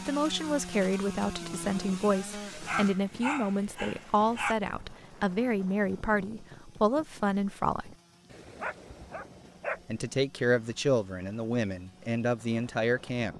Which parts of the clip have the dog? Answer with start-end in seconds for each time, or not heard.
2.6-4.5, 8.3-10.2.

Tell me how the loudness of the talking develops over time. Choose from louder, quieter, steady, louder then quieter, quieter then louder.
steady.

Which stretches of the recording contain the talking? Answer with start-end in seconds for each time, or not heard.
0.1-7.9, 9.8-13.3.